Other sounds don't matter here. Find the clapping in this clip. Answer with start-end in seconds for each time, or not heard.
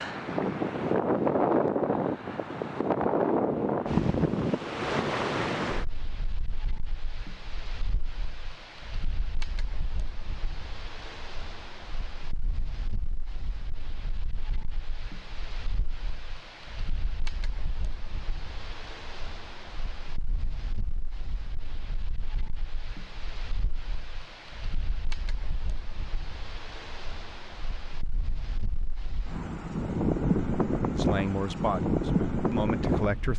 not heard.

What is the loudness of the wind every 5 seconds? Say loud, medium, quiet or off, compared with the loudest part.
loud, medium, quiet, quiet, quiet, quiet, loud.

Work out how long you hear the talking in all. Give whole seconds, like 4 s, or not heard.
2 s.